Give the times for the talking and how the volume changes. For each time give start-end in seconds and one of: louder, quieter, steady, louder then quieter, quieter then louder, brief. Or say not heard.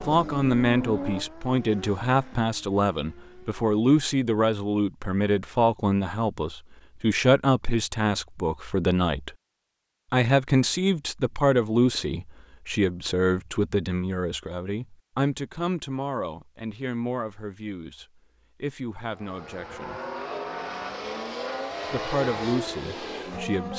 0.1-9.3 steady
10.1-20.0 quieter
21.9-23.7 brief.